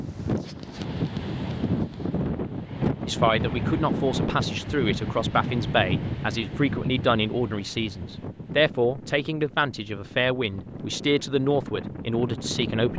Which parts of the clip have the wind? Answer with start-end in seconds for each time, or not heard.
0.0-12.9.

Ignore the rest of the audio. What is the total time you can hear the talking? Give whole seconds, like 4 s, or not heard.
10 s.